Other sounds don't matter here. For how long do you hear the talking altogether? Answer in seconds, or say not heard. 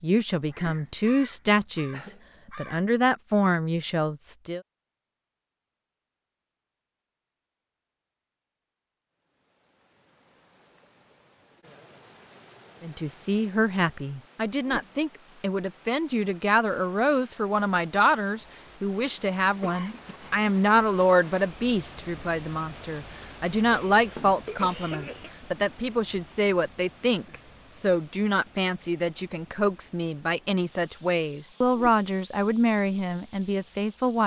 26 s.